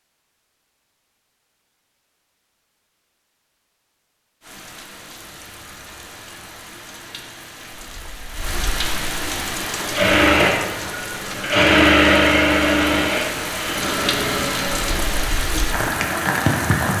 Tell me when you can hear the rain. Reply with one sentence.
The rain can be heard from 4.4 to 16.9 s.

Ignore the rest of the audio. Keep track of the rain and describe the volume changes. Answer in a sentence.
The volume of the rain goes up.